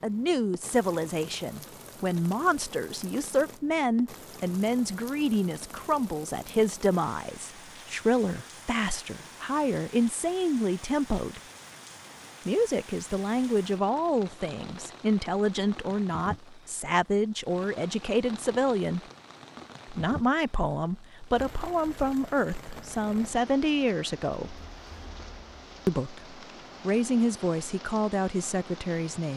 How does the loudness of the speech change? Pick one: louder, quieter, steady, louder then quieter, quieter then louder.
steady.